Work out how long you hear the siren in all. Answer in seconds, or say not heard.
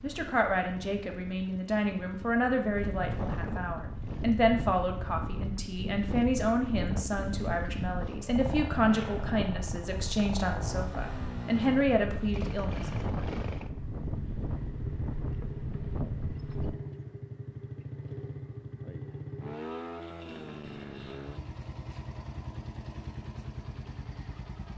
not heard.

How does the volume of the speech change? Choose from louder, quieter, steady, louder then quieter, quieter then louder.
steady.